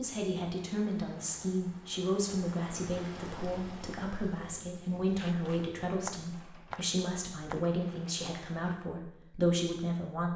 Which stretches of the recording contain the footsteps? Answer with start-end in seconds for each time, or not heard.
5.2-7.6.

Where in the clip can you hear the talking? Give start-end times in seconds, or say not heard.
0.0-10.3.